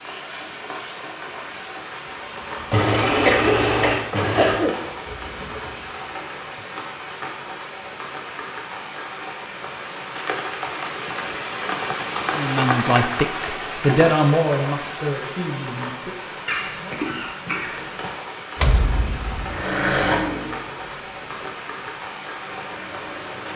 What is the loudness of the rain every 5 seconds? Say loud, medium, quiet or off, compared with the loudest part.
medium, medium, loud, medium, medium.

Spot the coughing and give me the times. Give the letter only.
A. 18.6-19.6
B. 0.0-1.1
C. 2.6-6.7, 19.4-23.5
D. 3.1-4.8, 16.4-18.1
D.